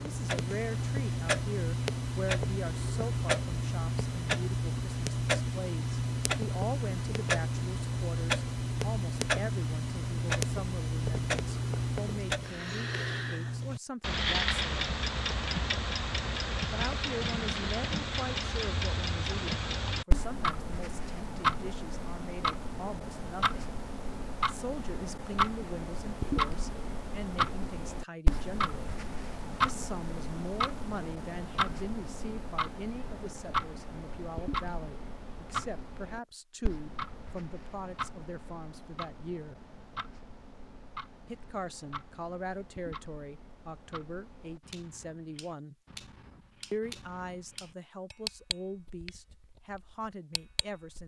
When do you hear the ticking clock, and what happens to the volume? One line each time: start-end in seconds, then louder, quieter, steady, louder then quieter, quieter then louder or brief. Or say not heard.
0.0-51.0 quieter.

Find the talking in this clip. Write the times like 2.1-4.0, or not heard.
0.0-14.9, 16.7-23.6, 24.4-28.9, 29.6-39.5, 41.2-45.8, 46.7-51.0.